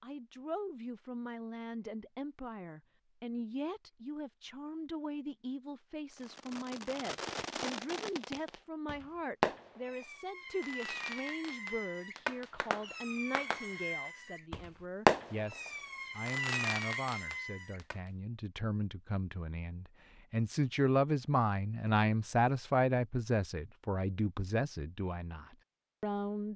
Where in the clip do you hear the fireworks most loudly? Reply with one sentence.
The volume of the fireworks peaks at 15 seconds.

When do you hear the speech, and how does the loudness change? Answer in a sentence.
The speech can be heard from 0.0 to 26.5 s, getting louder.